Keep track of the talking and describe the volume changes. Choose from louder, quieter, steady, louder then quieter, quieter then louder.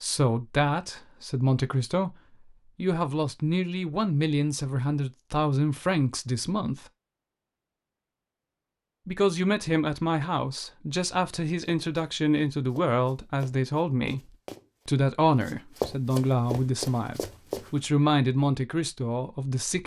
steady.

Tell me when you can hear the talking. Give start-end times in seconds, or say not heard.
0.0-6.9, 9.1-19.8.